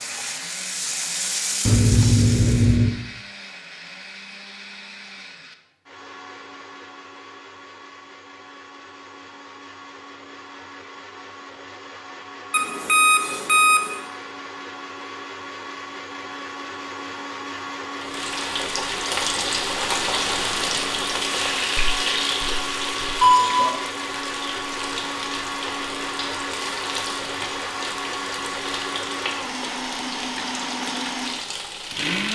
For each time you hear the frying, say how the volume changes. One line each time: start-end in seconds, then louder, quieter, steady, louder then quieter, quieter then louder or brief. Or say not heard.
0.0-2.8 brief
17.9-32.2 quieter.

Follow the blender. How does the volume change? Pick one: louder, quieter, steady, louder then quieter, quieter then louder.
louder.